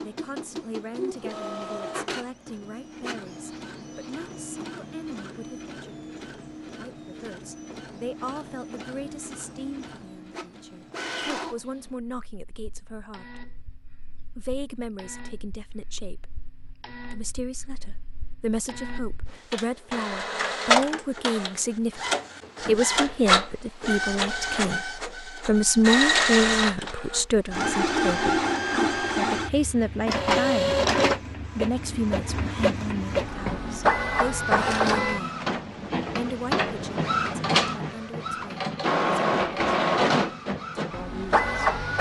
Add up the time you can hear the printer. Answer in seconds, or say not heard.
42 s.